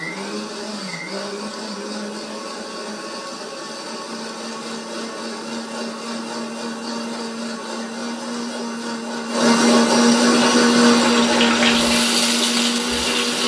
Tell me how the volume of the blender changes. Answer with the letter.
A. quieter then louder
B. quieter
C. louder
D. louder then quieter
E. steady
C.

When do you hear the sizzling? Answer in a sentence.
The sizzling can be heard from 10.5 to 13.4 s.